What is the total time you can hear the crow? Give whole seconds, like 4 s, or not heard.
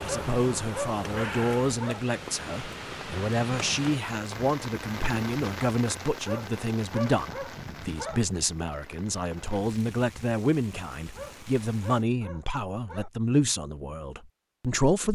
2 s.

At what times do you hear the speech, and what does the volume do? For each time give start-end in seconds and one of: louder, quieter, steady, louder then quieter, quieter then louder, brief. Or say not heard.
0.0-15.1 steady.